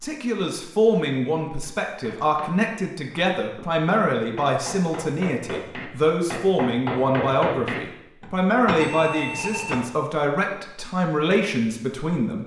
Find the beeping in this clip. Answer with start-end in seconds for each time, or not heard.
8.8-9.8.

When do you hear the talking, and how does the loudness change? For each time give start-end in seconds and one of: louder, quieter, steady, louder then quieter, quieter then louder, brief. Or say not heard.
0.0-12.4 steady.